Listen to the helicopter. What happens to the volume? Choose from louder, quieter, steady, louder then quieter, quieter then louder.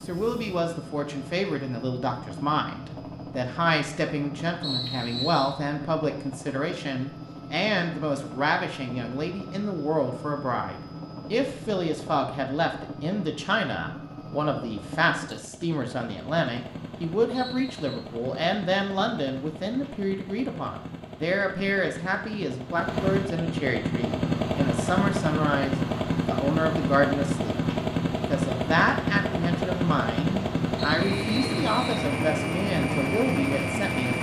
louder.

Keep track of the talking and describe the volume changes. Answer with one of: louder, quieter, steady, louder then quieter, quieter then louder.
steady.